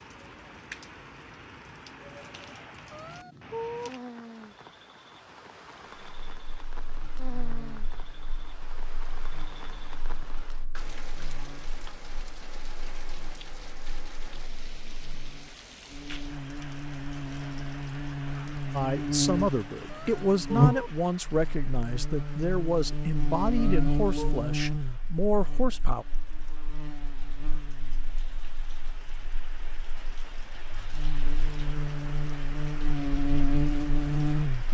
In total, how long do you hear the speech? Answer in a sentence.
The speech can be heard for 7 seconds in total.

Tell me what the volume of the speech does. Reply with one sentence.
The volume of the speech stays about the same.